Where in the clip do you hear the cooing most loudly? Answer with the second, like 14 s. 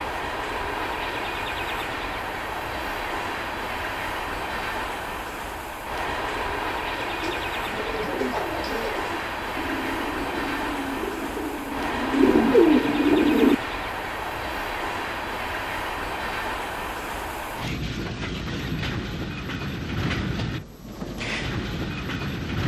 13 s.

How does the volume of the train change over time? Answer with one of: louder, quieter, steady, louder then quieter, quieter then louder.
steady.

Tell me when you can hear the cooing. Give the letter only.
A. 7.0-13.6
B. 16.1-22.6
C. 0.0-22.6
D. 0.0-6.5
A.